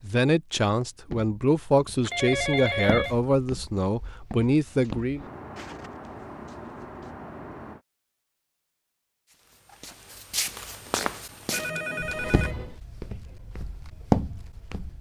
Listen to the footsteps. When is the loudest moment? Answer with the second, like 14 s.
14 s.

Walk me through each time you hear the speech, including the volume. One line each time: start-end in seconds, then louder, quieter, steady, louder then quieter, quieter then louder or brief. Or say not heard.
0.0-5.2 steady.